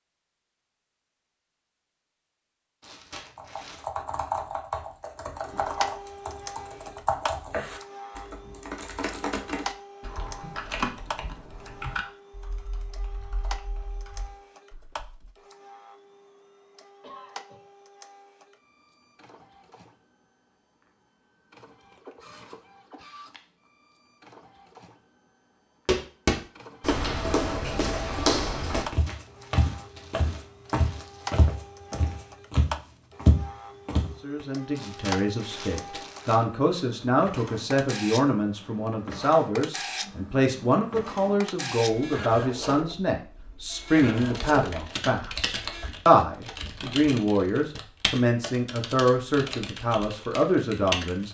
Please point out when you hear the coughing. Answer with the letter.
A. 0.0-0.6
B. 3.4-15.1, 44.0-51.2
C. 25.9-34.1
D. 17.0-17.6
D.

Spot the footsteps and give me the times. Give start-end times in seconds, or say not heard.
25.9-34.1.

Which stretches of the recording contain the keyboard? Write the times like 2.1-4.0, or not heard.
3.4-15.1, 44.0-51.2.